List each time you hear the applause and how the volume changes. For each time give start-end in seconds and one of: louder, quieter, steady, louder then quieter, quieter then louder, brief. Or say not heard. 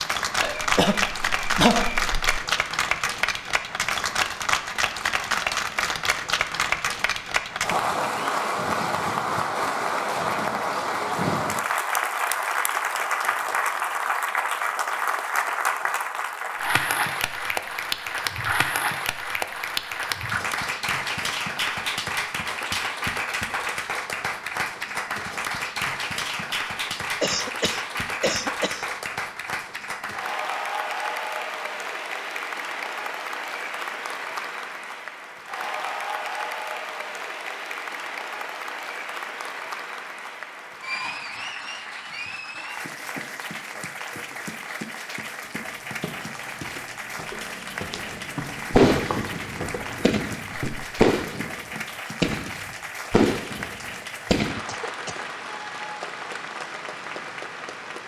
0.0-58.0 quieter.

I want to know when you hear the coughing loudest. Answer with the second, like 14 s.
2 s.